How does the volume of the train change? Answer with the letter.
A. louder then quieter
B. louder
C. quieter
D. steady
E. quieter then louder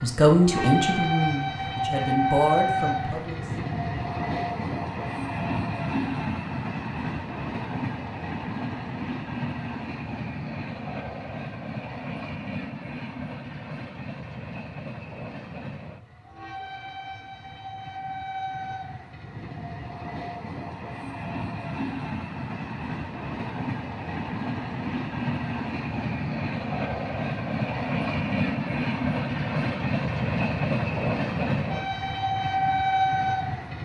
E.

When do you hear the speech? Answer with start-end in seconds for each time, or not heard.
0.0-3.4.